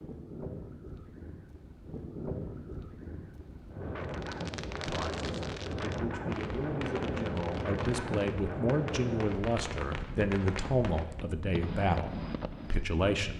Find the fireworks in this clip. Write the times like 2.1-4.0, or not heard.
4.0-12.9.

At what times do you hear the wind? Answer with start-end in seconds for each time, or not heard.
0.0-13.3.